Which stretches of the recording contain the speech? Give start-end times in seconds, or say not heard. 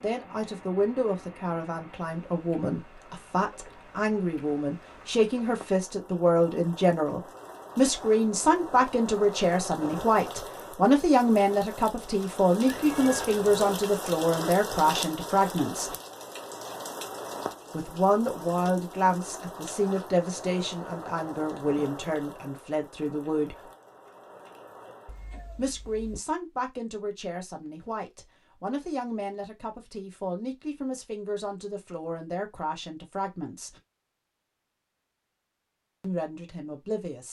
0.0-15.9, 17.7-23.7, 25.6-33.8, 36.0-37.2.